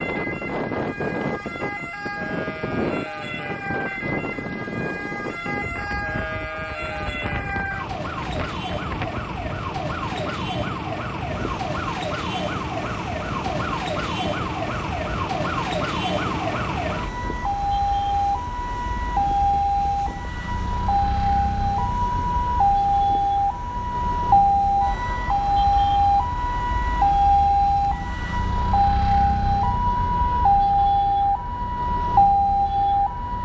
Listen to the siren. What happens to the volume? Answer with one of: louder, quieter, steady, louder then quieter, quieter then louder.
louder.